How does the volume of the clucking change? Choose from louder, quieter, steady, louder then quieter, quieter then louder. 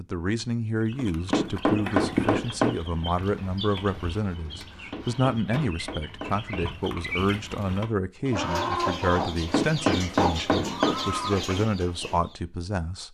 quieter then louder.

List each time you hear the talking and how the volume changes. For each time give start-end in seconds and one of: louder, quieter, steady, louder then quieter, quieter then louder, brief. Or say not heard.
0.0-13.0 steady.